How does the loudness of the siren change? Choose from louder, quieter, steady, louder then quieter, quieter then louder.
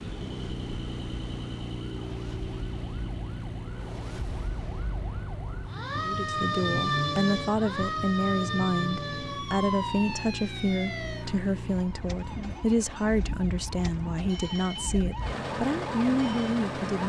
louder then quieter.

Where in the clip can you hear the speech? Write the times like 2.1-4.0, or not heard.
6.0-17.0.